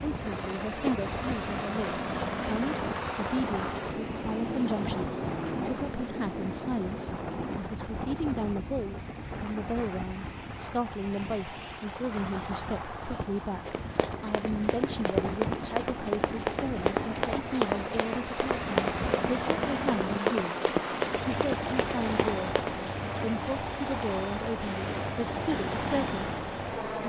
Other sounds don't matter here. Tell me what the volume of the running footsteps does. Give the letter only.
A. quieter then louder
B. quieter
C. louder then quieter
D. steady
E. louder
D.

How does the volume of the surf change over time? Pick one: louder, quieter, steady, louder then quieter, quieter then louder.
steady.